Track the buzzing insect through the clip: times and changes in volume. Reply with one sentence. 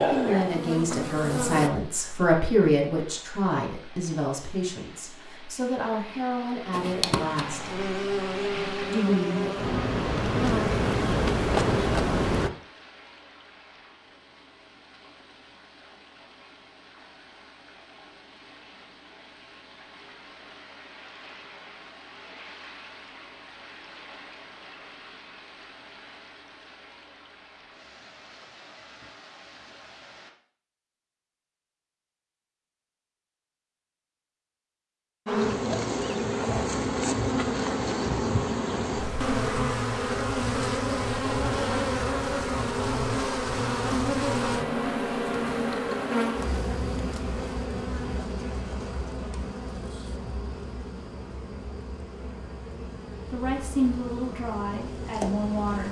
You can hear the buzzing insect briefly from 0.0 to 1.7 s; from 6.7 to 12.5 s, getting louder; and from 35.2 to 55.8 s, getting quieter.